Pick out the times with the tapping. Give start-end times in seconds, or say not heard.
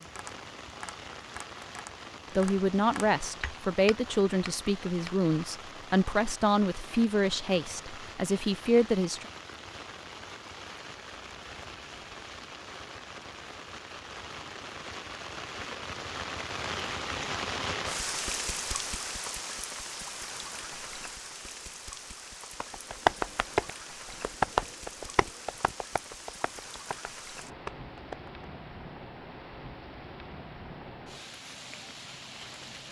0.0-5.5, 22.6-28.4.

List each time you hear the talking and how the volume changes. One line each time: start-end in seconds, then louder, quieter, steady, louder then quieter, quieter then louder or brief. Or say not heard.
2.4-9.2 steady.